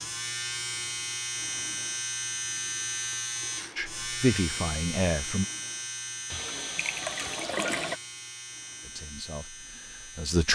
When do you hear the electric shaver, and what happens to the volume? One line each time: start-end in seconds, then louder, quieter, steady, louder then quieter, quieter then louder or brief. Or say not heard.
0.0-10.5 quieter.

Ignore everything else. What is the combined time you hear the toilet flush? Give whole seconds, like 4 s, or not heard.
2 s.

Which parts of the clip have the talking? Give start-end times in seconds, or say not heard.
3.8-5.5, 8.8-10.5.